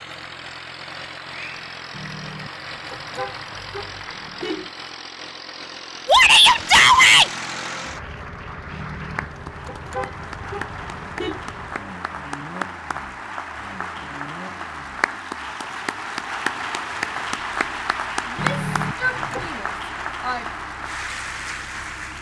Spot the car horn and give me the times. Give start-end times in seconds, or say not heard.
1.9-4.7, 8.7-11.4, 18.4-19.6.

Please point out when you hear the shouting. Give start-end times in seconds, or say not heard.
6.0-7.3, 18.2-20.4.